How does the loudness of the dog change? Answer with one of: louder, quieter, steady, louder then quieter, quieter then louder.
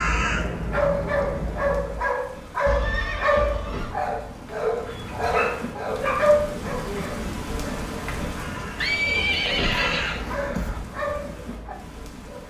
quieter then louder.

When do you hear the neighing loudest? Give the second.
9 s.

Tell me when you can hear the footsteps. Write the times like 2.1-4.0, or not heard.
not heard.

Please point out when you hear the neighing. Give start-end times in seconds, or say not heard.
2.6-4.0, 8.8-10.2.